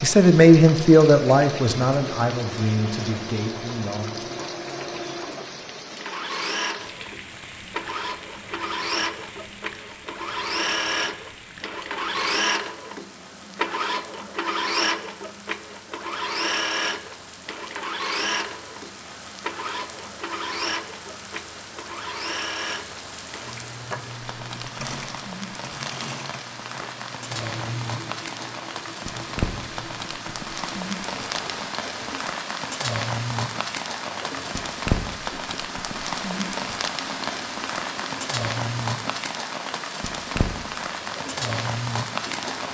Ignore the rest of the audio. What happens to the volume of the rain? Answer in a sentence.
The loudness of the rain goes down, then up.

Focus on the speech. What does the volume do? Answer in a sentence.
The volume of the speech goes down.